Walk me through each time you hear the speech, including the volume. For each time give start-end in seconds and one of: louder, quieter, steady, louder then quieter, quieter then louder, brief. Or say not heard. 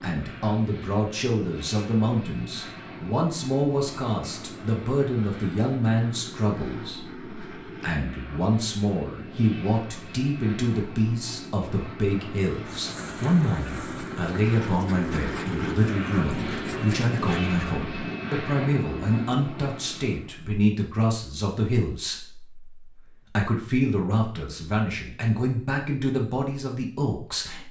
0.0-27.6 steady.